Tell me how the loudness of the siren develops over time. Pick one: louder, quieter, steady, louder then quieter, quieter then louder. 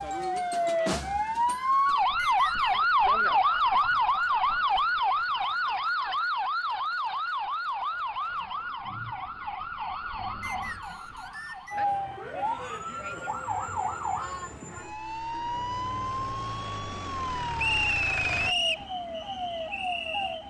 quieter.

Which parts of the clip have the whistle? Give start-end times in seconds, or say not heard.
2.1-2.8, 10.4-11.8, 17.6-18.9.